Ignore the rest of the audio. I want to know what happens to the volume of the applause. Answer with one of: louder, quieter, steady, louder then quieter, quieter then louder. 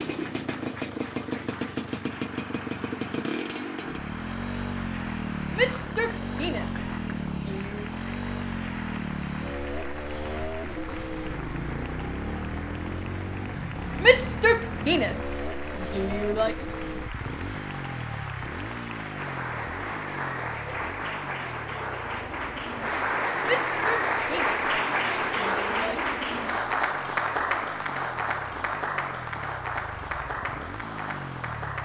louder.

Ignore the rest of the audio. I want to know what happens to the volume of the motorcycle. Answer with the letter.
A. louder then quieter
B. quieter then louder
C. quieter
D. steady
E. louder
C.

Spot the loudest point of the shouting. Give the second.
14 s.